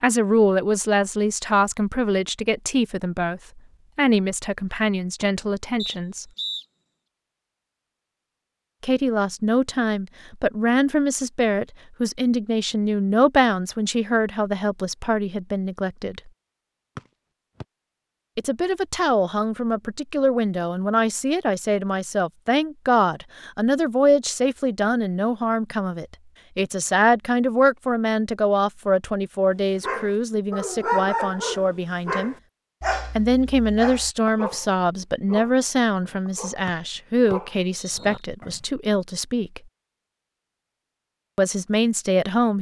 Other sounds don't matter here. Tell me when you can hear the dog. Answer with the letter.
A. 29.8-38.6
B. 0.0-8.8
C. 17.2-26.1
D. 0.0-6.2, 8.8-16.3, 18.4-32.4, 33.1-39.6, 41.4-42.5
A.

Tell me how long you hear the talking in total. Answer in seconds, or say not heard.
35 s.